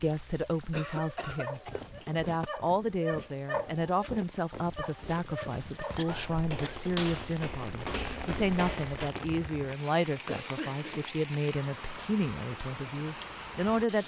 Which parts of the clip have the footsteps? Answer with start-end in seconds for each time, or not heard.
1.2-9.1.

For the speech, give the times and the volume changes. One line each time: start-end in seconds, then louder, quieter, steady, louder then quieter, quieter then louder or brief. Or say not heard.
0.0-14.0 steady.